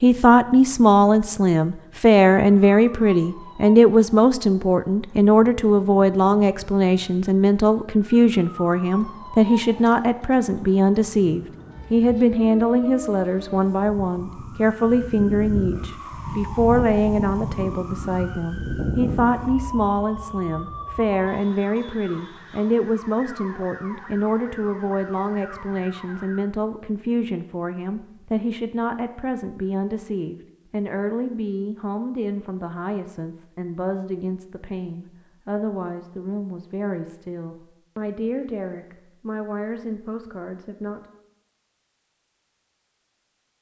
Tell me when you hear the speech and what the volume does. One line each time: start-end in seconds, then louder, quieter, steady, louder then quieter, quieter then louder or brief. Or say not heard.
0.0-41.0 quieter.